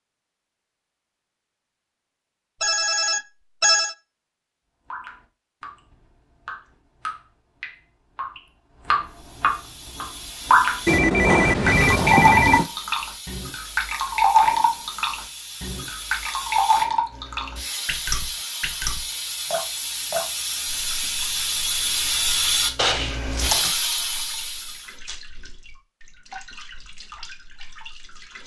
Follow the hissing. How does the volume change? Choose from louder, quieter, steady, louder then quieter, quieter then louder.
louder.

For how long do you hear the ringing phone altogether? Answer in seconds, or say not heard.
4 s.